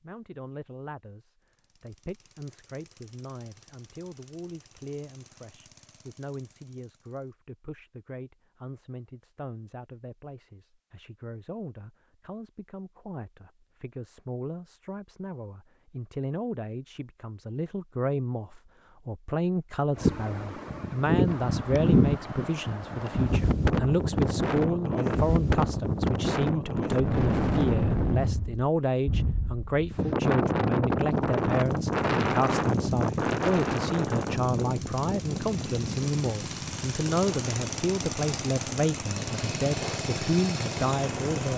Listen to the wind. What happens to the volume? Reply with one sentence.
The loudness of the wind goes down.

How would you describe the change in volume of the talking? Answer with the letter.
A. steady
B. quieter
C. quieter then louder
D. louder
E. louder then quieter
D.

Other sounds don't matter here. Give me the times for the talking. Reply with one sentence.
The talking can be heard from 0.0 to 41.5 s.